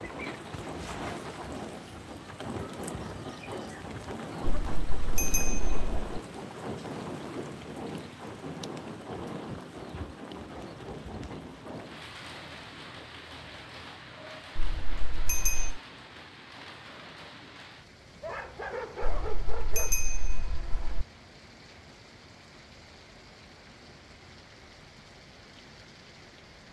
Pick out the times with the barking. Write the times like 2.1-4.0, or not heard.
18.2-19.9.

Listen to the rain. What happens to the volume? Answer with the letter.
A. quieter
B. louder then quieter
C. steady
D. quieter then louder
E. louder
A.